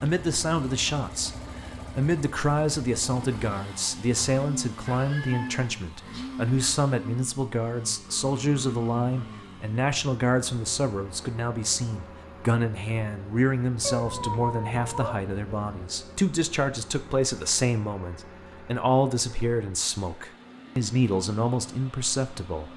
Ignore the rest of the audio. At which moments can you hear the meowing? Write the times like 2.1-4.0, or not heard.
4.8-6.2, 13.8-15.8.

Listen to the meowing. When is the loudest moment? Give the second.
14 s.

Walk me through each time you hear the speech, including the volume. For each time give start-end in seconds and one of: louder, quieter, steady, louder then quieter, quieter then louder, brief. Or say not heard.
0.0-22.7 steady.